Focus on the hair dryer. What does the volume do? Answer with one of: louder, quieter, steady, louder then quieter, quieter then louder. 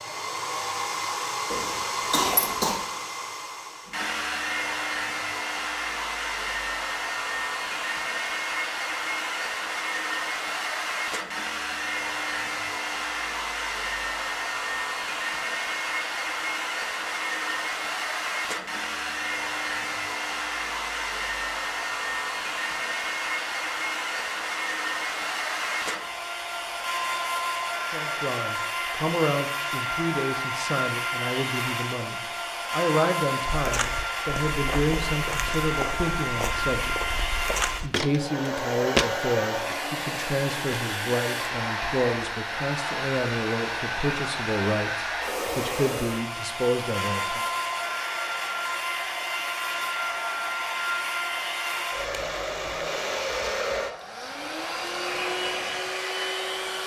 steady.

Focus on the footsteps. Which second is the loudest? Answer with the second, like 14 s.
39 s.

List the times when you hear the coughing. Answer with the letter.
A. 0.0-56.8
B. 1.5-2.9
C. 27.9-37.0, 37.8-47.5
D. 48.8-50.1
B.